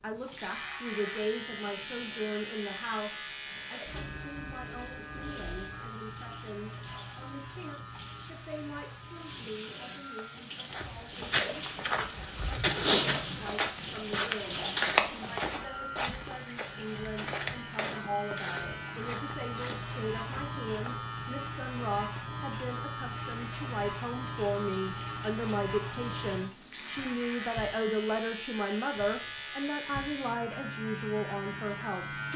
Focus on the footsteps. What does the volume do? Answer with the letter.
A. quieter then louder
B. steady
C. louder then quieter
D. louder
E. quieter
C.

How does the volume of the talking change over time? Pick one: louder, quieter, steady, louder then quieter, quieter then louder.
quieter then louder.